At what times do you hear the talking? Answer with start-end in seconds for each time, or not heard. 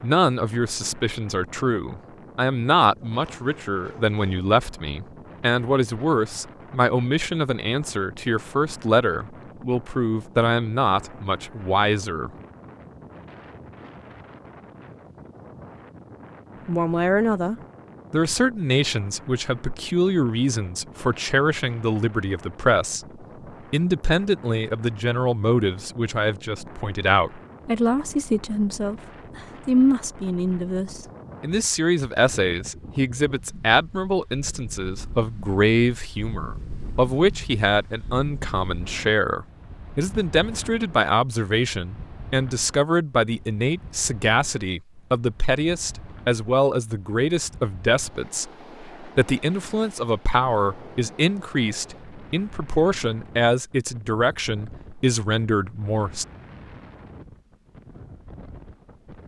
0.0-12.3, 16.6-23.1, 23.7-56.2.